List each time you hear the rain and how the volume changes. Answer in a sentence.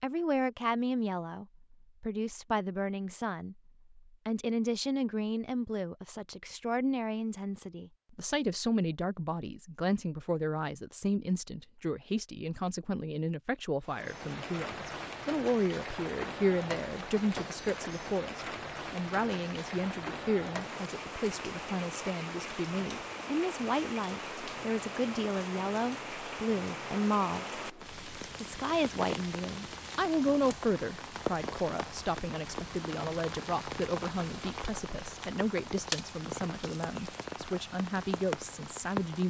The rain can be heard from 13.8 to 39.2 s, at a steady volume.